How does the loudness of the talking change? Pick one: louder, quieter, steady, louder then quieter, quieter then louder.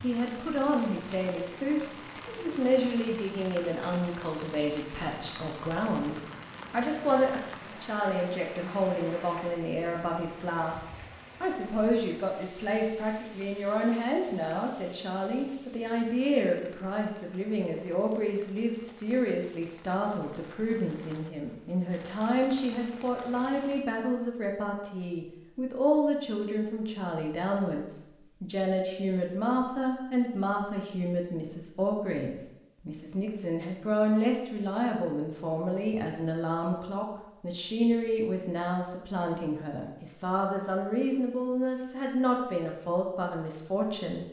steady.